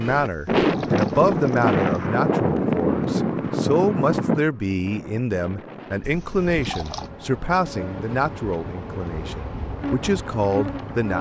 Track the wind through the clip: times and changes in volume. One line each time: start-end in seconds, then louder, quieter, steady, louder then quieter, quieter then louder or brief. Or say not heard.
0.0-11.0 quieter.